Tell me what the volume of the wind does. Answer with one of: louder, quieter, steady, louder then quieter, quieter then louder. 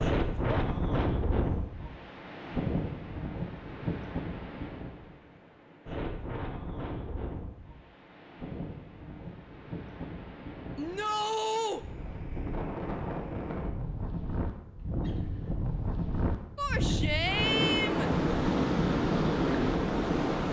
quieter then louder.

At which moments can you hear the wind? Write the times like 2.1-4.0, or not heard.
0.0-20.4.